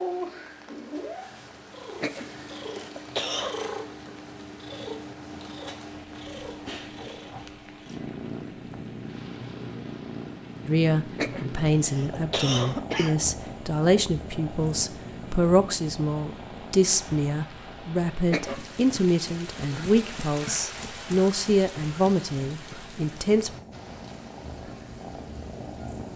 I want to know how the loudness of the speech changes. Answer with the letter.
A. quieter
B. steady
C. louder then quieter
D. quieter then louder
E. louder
B.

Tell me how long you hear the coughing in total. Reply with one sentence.
The coughing can be heard for 4 seconds in total.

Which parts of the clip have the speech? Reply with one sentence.
The speech can be heard from 10.7 to 23.5 s.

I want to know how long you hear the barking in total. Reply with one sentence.
You can't hear the barking here.